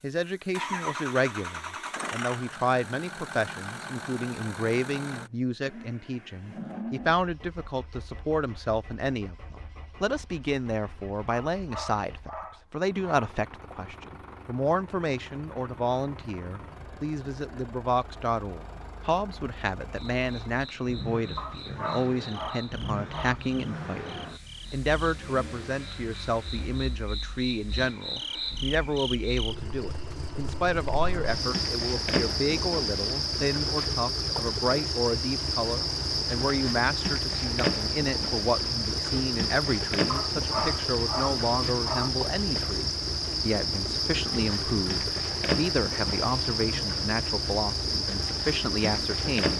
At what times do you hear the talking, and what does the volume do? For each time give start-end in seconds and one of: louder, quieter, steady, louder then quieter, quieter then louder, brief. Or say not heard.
0.0-49.5 steady.